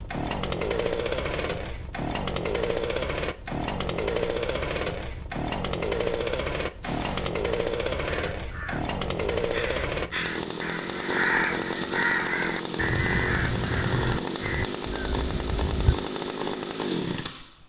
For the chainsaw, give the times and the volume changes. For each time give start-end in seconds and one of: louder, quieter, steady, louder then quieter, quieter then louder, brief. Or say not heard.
0.0-17.6 steady.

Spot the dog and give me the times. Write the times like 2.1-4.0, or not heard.
not heard.